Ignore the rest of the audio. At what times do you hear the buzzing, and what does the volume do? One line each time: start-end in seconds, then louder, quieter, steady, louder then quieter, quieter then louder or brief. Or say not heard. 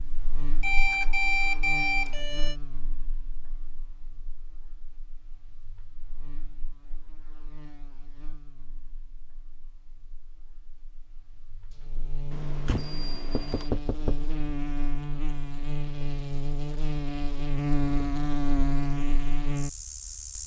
0.0-20.4 quieter then louder.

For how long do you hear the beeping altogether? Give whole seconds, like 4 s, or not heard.
3 s.